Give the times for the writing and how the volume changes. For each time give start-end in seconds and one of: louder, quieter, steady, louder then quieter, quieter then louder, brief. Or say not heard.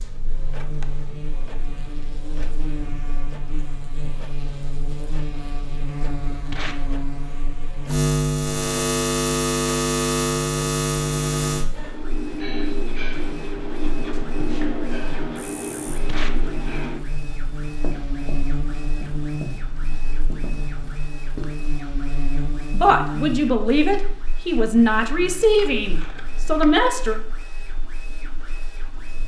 11.8-21.6 quieter.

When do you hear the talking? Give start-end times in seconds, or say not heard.
22.7-27.1.